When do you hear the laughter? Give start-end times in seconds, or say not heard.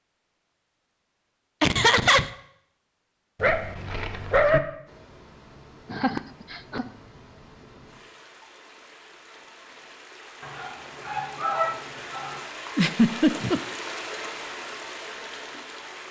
1.6-2.3, 5.9-6.8, 12.8-13.6.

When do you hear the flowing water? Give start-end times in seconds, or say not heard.
4.8-16.0.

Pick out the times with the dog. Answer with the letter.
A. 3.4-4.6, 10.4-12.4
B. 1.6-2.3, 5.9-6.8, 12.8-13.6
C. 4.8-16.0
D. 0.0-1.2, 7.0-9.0
A.